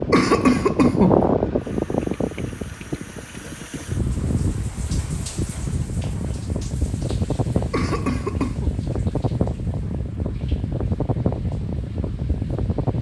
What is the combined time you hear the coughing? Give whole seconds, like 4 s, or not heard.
2 s.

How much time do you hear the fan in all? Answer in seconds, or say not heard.
13 s.